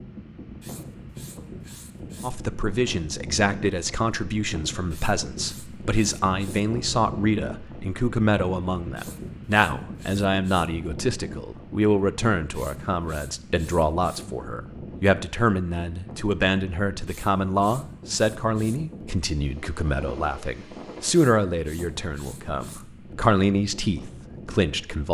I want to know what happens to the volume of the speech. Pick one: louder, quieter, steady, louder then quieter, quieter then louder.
steady.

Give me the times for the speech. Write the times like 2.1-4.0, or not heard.
2.2-25.0.